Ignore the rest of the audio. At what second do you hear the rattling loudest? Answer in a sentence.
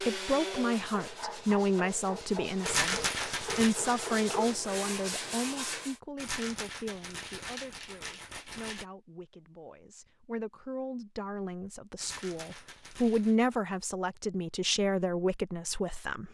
The loudest moment of the rattling is at 3 seconds.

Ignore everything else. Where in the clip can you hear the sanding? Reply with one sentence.
You can hear the sanding from 0.0 to 6.0 s.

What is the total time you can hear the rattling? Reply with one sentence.
The rattling can be heard for 5 seconds in total.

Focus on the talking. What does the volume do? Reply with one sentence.
The volume of the talking goes down, then up.